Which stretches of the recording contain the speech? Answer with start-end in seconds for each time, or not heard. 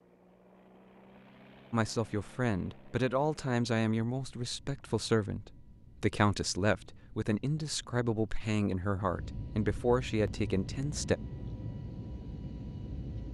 1.7-11.2.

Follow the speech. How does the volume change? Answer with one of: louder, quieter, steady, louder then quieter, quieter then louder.
steady.